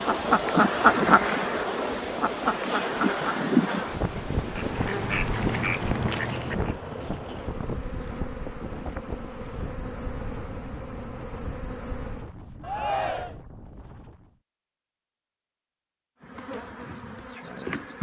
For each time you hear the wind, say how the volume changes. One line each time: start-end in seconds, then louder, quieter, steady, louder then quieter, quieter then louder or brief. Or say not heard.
0.0-14.4 quieter.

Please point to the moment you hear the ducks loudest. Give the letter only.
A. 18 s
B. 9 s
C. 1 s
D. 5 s
C.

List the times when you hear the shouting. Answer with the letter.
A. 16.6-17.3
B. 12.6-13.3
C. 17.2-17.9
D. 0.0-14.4
B.